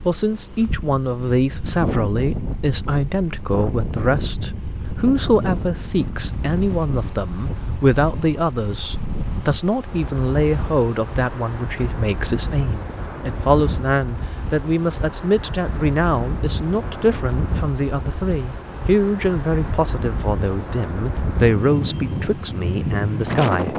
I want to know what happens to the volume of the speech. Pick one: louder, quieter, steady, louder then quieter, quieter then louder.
steady.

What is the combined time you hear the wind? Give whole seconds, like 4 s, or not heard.
24 s.